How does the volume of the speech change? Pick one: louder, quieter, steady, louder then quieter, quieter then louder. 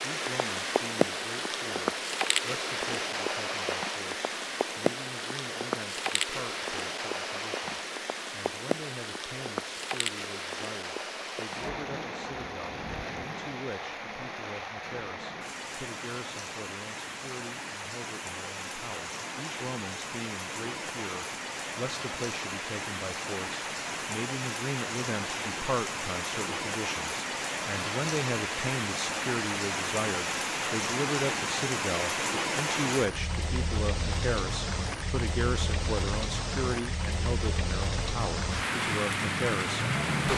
louder.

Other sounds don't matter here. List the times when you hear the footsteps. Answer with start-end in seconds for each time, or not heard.
not heard.